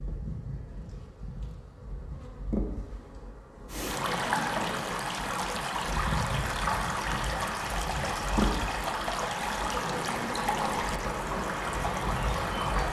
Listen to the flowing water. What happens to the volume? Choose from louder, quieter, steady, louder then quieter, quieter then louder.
steady.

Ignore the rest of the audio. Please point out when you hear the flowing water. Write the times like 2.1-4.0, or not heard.
3.6-12.8.